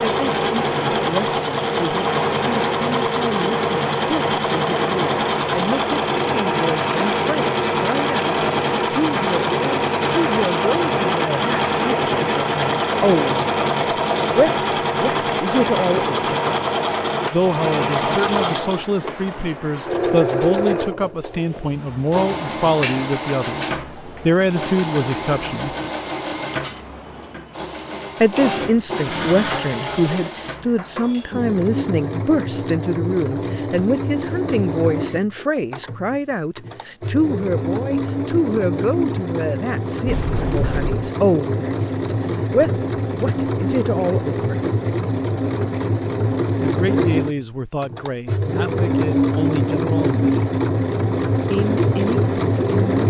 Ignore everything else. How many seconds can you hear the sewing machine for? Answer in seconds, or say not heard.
53 s.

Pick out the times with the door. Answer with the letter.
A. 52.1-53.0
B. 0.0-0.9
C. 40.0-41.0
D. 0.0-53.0
C.